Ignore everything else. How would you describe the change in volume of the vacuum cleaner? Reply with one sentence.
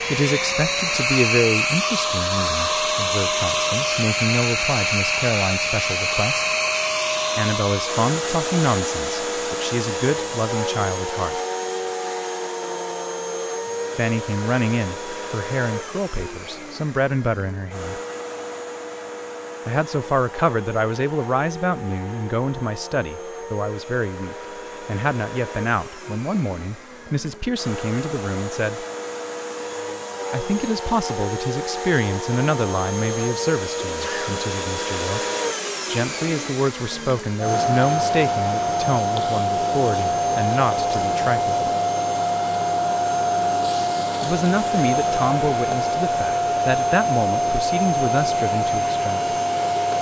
The loudness of the vacuum cleaner goes down, then up.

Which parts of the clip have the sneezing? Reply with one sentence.
The sneezing can be heard from 33.8 to 34.5 s.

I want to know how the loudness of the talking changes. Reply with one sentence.
The loudness of the talking stays about the same.